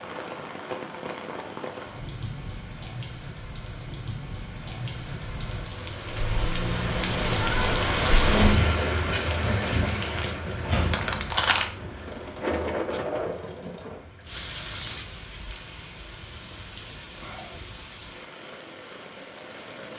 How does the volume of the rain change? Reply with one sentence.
The loudness of the rain goes up, then down.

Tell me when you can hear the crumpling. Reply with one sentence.
You can hear the crumpling from 10.9 to 11.7 s.